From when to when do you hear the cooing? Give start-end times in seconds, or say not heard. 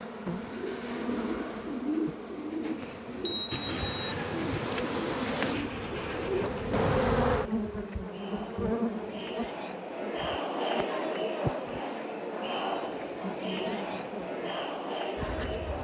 0.4-6.9.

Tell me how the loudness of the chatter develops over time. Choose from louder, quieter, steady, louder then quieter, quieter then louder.
louder.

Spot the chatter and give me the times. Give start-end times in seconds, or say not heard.
7.2-15.7.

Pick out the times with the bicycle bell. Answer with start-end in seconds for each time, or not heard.
2.8-4.1.